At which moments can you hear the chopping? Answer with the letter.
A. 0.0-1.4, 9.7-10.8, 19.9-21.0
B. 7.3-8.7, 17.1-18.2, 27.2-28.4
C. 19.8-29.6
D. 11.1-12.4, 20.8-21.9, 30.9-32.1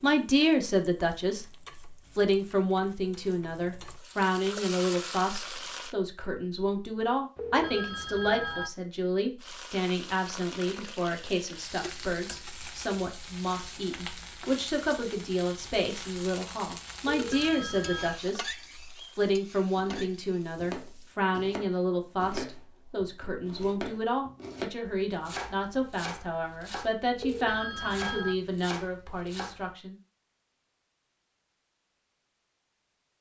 C.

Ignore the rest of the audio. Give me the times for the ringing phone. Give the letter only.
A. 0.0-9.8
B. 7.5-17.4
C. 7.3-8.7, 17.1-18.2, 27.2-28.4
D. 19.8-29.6
C.